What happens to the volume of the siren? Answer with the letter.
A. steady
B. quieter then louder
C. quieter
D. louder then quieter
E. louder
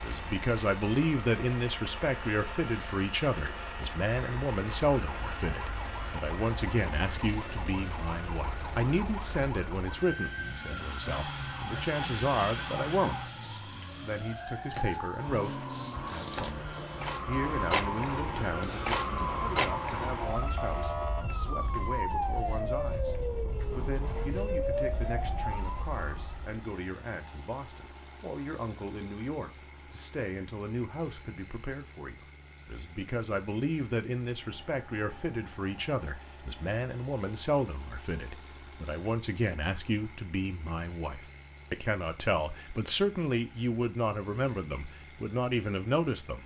E.